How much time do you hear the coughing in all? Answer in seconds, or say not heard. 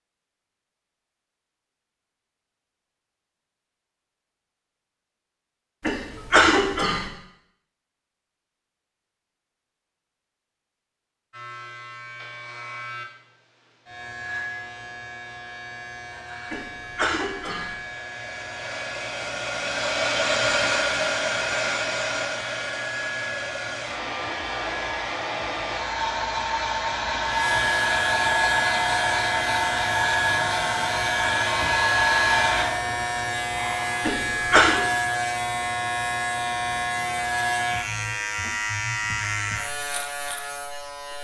3 s.